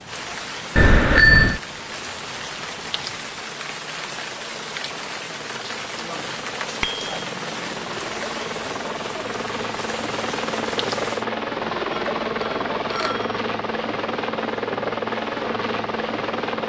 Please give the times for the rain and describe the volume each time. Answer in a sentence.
You can hear the rain from 0.0 to 11.2 s, at a steady volume.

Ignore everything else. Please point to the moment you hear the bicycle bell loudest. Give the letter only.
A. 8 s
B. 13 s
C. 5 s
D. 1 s
D.